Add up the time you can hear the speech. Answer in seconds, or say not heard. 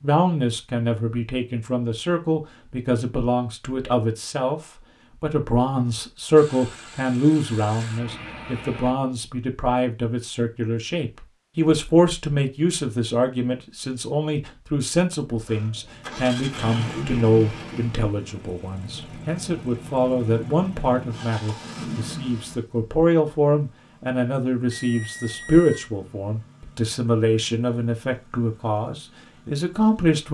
30 s.